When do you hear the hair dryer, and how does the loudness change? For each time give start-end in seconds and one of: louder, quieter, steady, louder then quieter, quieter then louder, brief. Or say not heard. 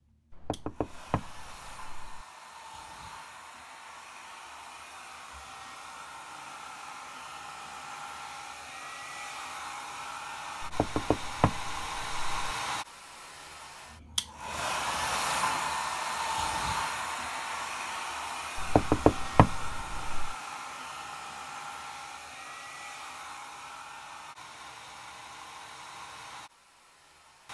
0.0-27.4 louder then quieter.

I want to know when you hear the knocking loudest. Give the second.
19 s.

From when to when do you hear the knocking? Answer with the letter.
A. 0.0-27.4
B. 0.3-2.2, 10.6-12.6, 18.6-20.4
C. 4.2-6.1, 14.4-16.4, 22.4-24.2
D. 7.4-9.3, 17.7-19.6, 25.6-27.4
B.